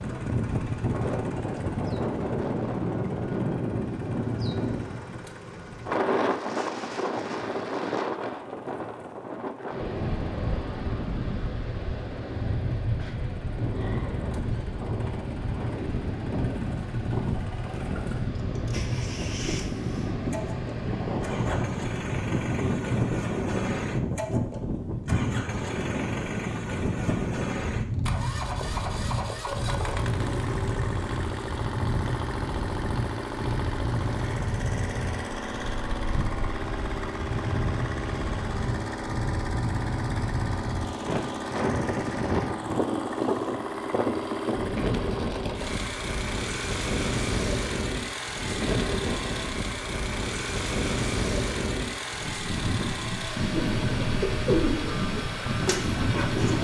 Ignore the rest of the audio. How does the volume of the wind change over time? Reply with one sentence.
The volume of the wind stays about the same.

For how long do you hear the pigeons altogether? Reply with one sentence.
The pigeons can be heard for 3 seconds in total.